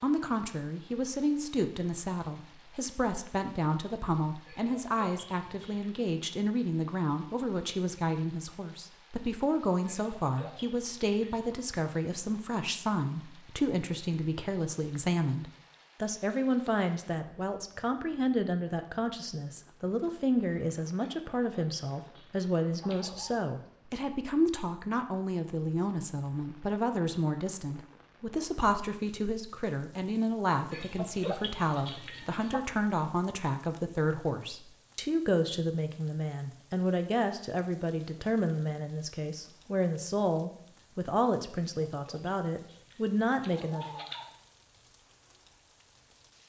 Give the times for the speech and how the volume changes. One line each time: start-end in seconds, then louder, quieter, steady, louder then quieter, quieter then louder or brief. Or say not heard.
0.0-44.0 steady.